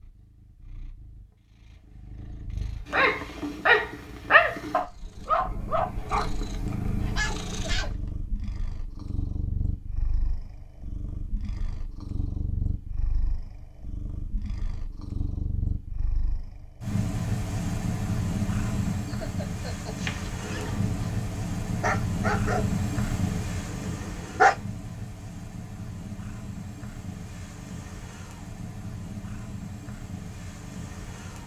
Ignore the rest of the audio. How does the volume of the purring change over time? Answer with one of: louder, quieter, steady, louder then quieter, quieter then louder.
louder then quieter.